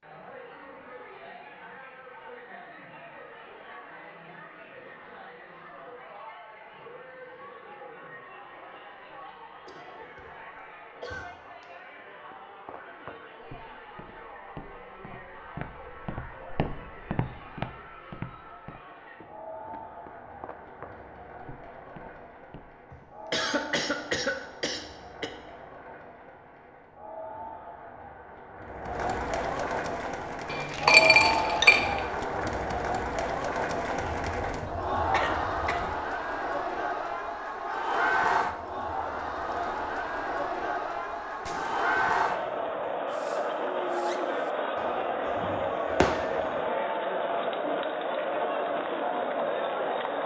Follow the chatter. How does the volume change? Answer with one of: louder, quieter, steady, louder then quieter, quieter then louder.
louder.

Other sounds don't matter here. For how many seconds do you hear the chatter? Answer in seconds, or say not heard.
50 s.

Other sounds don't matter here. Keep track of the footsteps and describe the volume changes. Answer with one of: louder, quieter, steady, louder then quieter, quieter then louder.
louder then quieter.